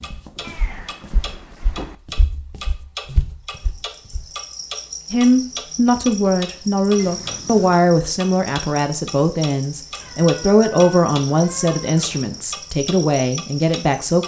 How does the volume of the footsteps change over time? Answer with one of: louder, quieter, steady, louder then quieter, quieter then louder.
louder.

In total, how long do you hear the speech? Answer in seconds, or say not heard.
9 s.